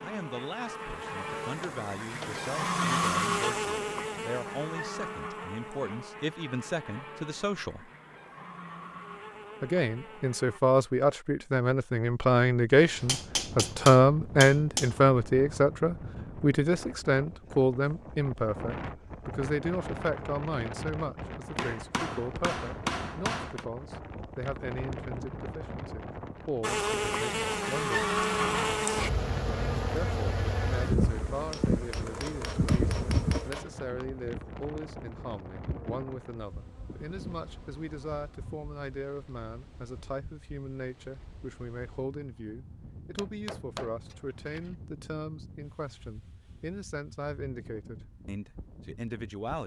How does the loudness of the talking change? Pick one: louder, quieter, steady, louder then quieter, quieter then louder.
louder then quieter.